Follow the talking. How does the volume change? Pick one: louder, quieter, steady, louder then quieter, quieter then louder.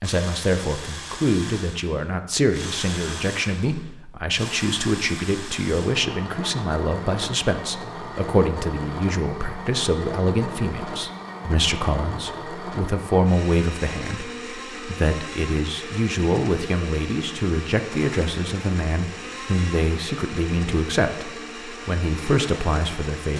steady.